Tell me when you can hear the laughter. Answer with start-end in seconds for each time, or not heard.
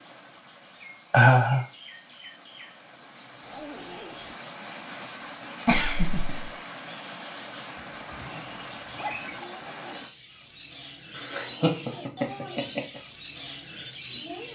1.1-1.6, 5.7-6.5, 11.2-13.0.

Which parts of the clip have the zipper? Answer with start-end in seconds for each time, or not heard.
3.4-4.3, 7.8-9.3.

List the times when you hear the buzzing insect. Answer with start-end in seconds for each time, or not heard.
not heard.